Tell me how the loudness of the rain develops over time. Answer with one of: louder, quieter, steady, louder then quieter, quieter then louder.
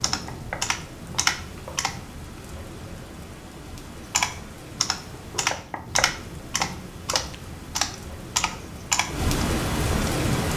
louder.